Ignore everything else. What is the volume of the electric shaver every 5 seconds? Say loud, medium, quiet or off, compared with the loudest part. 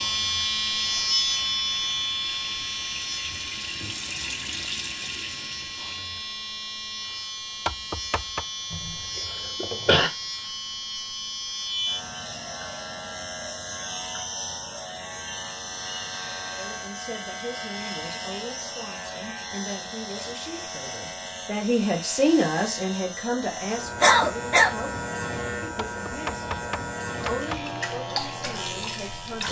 loud, medium, medium, medium, medium, medium.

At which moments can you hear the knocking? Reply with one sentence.
The knocking can be heard from 7.7 to 8.4 s and from 25.9 to 27.6 s.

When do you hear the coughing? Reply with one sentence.
The coughing can be heard from 8.7 to 10.1 s and from 24.0 to 24.7 s.